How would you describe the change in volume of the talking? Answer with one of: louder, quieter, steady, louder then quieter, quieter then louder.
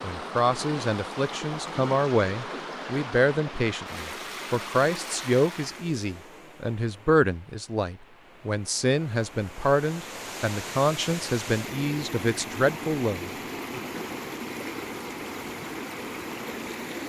steady.